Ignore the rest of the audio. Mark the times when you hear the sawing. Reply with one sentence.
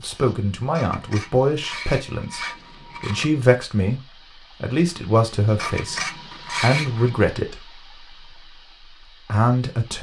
The sawing can be heard from 0.7 to 3.4 s and from 5.5 to 7.2 s.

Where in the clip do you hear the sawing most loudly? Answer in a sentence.
The loudest moment of the sawing is at 7 seconds.